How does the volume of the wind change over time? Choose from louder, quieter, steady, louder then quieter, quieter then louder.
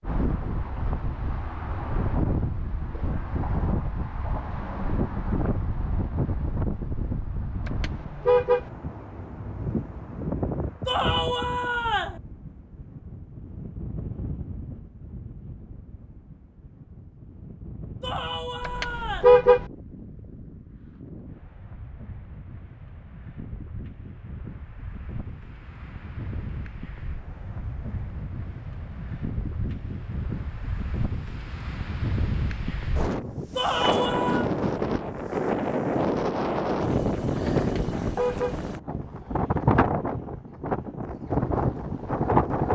quieter then louder.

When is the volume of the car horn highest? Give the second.
19 s.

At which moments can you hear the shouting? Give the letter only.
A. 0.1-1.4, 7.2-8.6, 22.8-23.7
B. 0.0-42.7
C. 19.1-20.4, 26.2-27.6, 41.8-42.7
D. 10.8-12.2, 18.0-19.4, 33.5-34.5
D.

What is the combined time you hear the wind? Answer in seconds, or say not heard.
43 s.